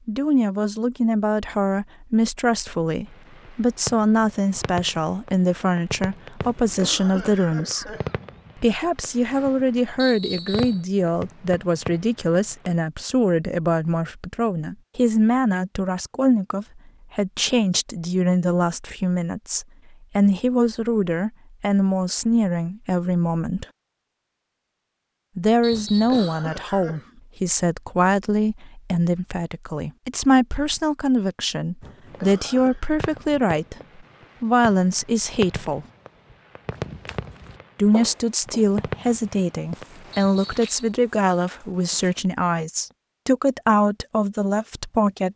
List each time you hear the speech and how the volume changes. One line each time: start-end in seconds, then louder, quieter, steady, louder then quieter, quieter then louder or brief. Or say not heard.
0.1-8.0 steady
8.6-23.6 steady
25.4-33.8 steady
34.4-35.9 brief
37.8-45.3 steady.